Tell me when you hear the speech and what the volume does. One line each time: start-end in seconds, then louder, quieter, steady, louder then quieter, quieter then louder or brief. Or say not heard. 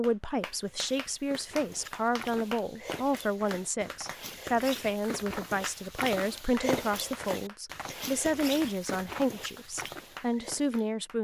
0.0-11.1 steady.